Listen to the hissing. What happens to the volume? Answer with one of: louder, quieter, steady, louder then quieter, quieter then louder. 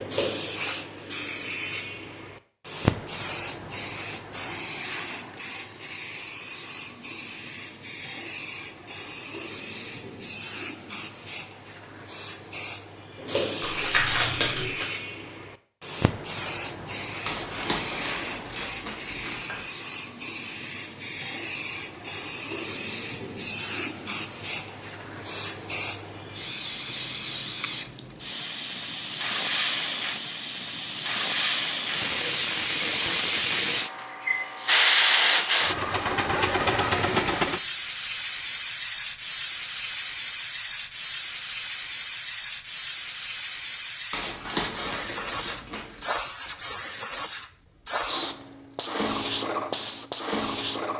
louder then quieter.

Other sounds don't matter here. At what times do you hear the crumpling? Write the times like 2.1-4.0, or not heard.
13.6-14.8, 17.2-19.6, 44.1-46.0.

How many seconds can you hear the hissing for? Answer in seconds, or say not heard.
51 s.